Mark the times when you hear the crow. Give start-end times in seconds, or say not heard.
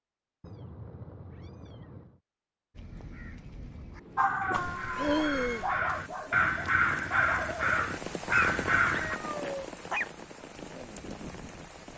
2.8-9.2.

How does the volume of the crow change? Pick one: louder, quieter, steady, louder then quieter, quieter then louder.
louder.